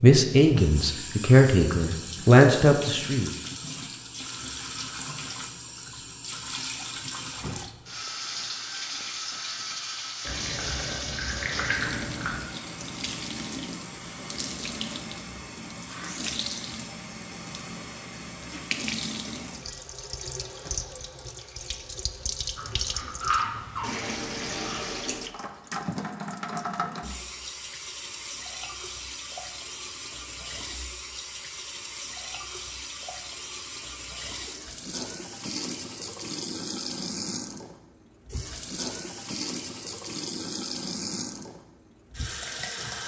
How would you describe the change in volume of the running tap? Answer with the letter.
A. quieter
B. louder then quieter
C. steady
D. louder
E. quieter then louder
C.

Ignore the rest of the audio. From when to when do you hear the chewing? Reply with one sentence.
You can hear the chewing from 10.2 to 12.4 s and from 22.6 to 24.9 s.